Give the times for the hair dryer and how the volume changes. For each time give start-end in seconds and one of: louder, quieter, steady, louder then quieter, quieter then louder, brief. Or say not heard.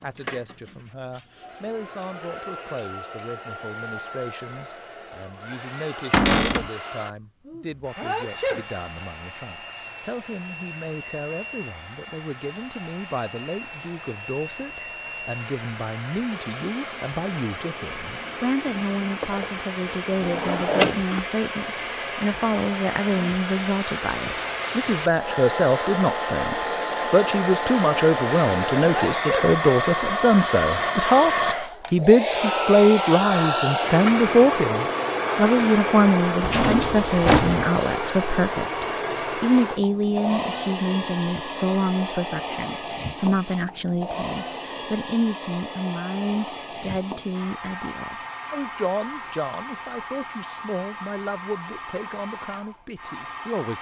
0.0-53.7 louder then quieter.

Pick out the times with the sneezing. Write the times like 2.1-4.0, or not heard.
8.0-8.7, 28.8-29.5.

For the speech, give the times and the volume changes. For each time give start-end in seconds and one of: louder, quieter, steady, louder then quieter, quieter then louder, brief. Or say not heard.
0.0-53.7 louder then quieter.